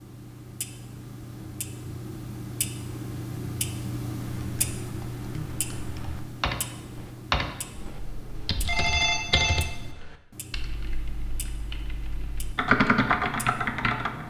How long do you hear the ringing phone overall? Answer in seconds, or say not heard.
2 s.